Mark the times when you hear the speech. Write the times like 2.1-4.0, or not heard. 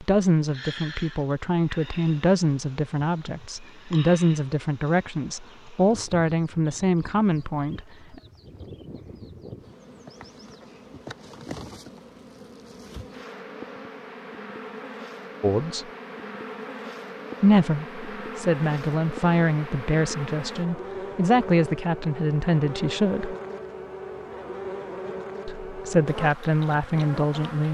0.0-8.2, 15.4-15.8, 17.4-23.4, 25.4-27.6.